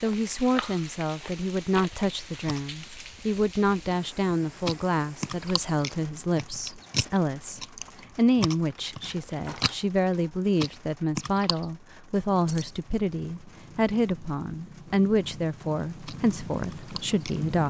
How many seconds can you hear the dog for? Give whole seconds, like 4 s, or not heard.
not heard.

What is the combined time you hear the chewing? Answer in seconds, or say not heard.
10 s.